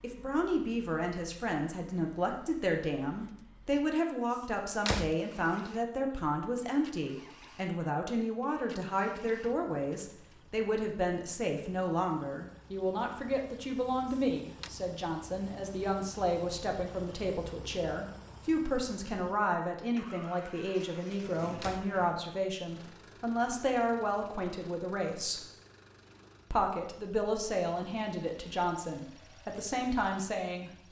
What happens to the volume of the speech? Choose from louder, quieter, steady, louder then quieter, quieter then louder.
steady.